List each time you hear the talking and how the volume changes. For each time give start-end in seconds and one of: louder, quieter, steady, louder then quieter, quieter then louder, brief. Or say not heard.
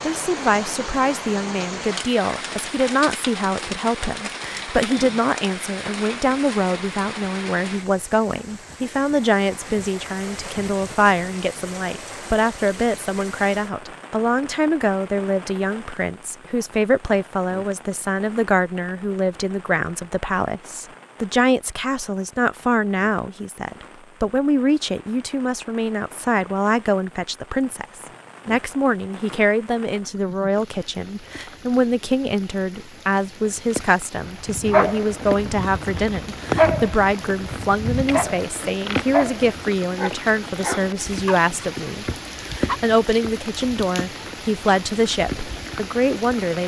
0.0-46.6 steady.